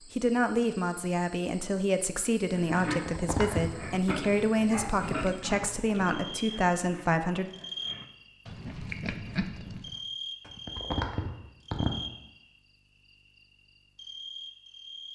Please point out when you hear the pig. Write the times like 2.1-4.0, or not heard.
2.5-10.0.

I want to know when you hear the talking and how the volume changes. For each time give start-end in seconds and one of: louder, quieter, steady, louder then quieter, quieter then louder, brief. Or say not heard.
0.1-7.5 steady.